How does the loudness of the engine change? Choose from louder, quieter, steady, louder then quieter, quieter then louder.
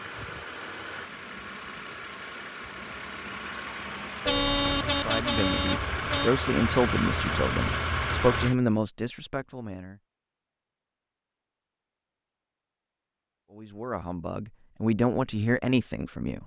louder.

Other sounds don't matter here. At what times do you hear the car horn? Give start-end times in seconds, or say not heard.
4.2-6.3.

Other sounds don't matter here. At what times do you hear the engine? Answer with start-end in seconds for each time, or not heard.
0.0-8.6.